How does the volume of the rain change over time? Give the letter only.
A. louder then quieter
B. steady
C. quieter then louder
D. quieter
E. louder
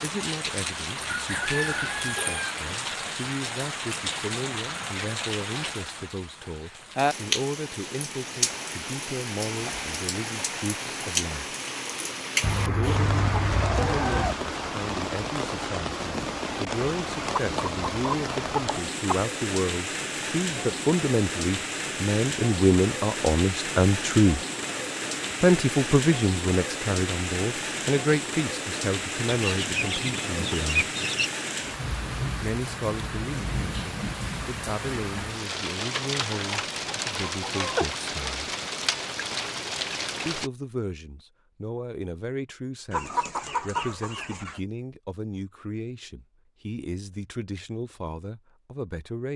B.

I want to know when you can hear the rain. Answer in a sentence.
You can hear the rain from 0.0 to 40.5 s.